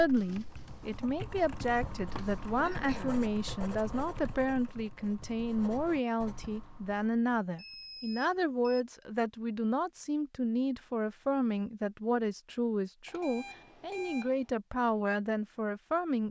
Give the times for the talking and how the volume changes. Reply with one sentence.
The talking can be heard from 0.0 to 16.2 s, at a steady volume.